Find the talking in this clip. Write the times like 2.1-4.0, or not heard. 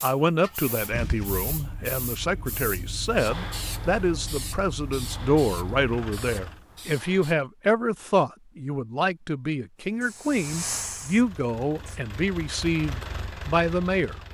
0.0-14.2.